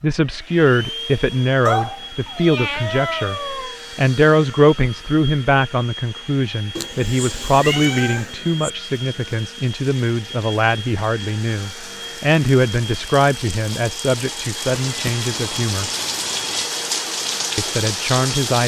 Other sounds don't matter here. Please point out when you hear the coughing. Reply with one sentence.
The coughing can't be heard in this clip.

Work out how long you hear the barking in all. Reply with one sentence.
You can't hear the barking here.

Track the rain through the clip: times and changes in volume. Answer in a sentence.
You can hear the rain from 8.8 to 18.6 s, getting louder.